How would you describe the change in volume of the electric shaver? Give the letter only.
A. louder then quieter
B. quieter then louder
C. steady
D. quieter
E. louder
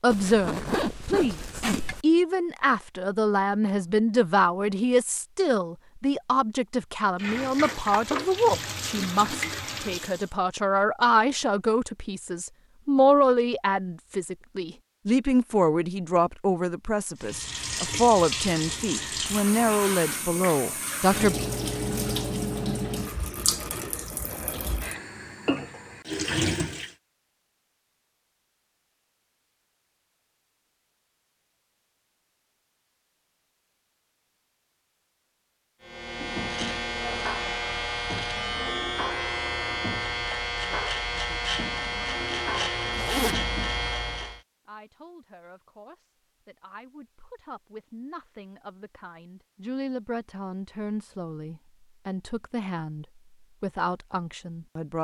C.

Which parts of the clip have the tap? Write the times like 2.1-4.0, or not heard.
7.2-10.3, 17.1-26.9.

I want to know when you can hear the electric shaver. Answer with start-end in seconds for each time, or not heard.
35.8-44.4.